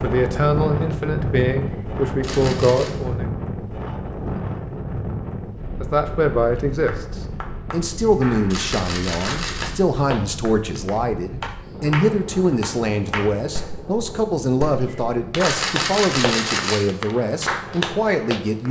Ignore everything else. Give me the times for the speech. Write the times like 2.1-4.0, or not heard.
0.0-3.2, 5.8-18.6.